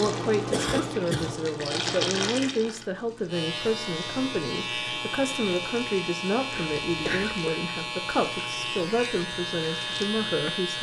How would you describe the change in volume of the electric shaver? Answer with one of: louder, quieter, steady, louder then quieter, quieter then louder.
steady.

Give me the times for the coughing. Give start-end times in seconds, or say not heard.
0.5-1.4, 6.5-7.5.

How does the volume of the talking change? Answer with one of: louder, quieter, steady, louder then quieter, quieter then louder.
steady.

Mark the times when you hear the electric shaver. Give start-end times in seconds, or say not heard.
3.2-10.7.